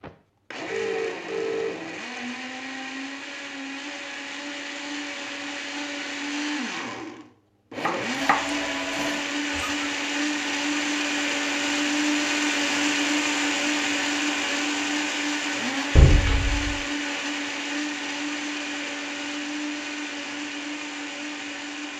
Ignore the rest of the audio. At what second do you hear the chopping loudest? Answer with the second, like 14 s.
8 s.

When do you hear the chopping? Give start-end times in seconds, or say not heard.
7.8-9.8.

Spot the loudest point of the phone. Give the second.
16 s.